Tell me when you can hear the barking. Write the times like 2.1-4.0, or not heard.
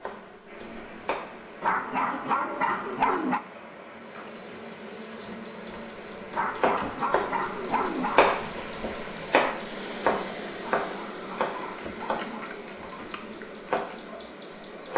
1.6-3.4, 6.3-8.2, 10.8-12.5.